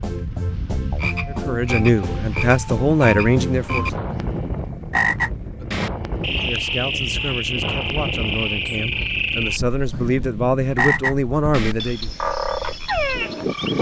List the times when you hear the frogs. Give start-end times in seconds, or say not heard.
0.0-13.7.